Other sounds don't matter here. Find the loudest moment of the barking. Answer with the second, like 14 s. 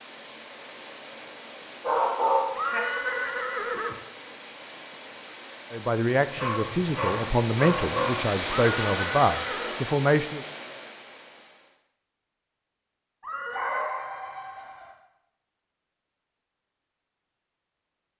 2 s.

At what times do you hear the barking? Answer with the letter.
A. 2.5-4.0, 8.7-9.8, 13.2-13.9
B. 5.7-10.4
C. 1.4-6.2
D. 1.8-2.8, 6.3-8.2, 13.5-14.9
D.